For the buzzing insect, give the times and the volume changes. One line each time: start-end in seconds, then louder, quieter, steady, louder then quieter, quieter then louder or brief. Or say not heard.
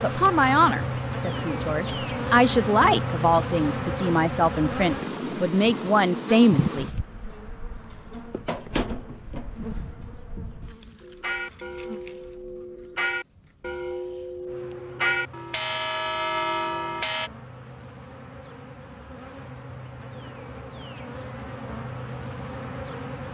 0.0-23.2 quieter then louder.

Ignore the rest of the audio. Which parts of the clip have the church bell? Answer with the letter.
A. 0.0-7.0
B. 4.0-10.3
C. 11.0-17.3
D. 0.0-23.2
C.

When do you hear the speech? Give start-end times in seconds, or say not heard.
0.0-7.0.